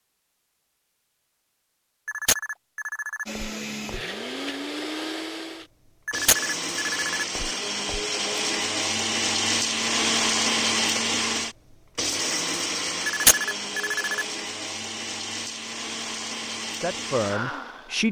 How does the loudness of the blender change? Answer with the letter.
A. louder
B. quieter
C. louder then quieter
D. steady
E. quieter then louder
C.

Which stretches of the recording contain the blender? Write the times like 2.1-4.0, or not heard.
3.2-18.0.